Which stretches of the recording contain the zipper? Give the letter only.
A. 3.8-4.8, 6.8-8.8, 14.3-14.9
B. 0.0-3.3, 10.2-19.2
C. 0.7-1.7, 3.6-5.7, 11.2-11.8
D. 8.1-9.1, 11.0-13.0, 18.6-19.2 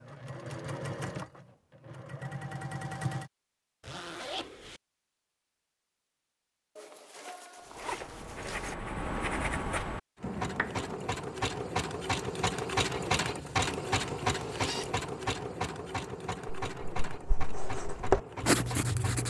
A.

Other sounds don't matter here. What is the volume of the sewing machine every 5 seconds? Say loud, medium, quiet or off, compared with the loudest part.
medium, off, loud, medium.